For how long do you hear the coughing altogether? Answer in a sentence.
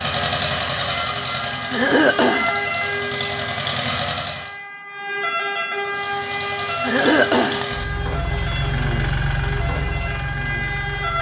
The coughing can be heard for 2 seconds in total.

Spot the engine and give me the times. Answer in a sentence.
The engine can be heard from 0.0 to 4.5 s and from 5.8 to 11.1 s.